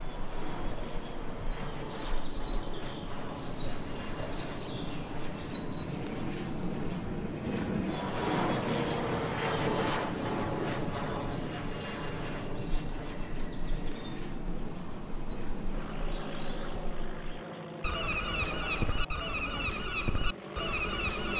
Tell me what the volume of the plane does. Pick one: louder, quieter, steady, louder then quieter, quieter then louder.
louder then quieter.